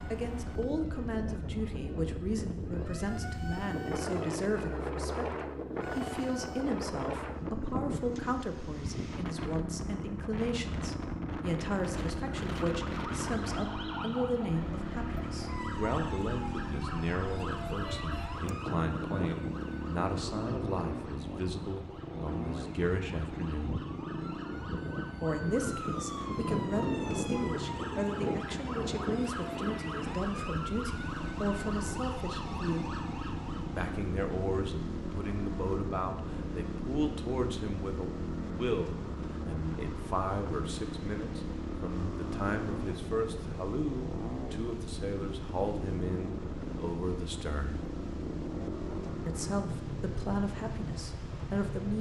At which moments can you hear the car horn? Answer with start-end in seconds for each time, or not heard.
17.9-18.3.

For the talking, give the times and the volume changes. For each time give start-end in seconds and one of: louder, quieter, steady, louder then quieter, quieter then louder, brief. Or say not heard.
0.0-23.8 steady
25.2-32.9 steady
33.8-47.8 steady
49.2-51.9 brief.